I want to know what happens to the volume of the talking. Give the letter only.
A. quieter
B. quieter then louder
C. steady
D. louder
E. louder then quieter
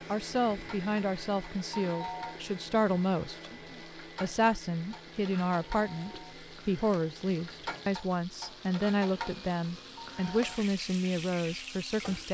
C.